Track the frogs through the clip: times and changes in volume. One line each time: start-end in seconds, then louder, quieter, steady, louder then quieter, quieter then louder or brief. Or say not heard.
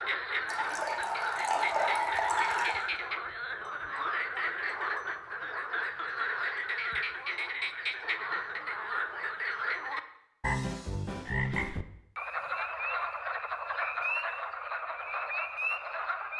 0.0-16.3 steady.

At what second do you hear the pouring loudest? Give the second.
2 s.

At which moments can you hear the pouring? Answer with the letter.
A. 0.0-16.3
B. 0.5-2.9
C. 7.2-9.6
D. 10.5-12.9
B.